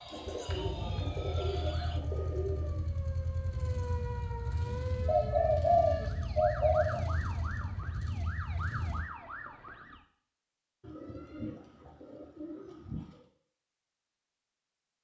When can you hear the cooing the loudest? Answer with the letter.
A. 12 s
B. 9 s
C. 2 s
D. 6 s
D.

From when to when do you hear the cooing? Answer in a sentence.
You can hear the cooing from 0.1 to 2.9 s, from 5.0 to 7.0 s and from 10.8 to 13.2 s.